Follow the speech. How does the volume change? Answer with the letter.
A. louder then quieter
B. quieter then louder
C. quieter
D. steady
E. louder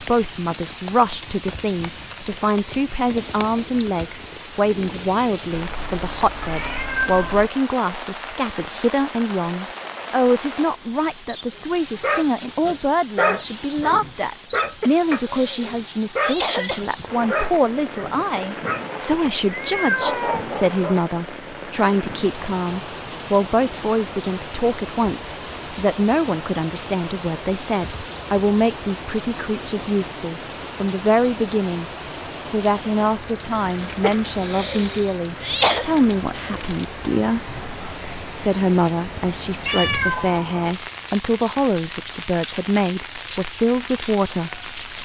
D.